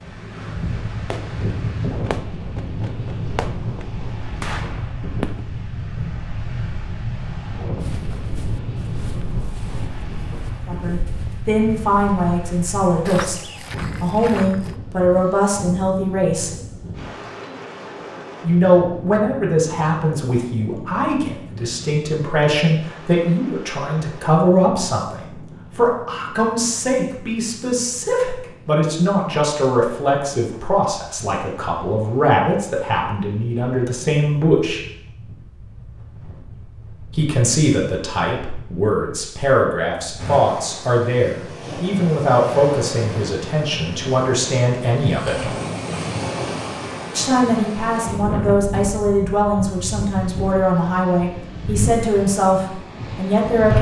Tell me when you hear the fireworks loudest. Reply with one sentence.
The volume of the fireworks peaks at 5 seconds.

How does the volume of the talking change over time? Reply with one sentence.
The volume of the talking stays about the same.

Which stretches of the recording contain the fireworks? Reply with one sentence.
You can hear the fireworks from 1.1 to 5.8 s.